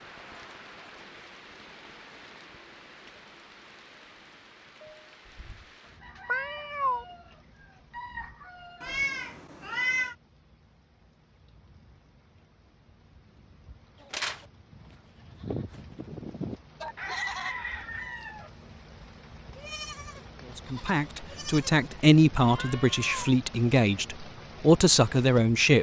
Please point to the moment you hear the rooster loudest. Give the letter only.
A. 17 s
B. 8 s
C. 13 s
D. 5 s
A.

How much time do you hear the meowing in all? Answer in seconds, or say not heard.
3 s.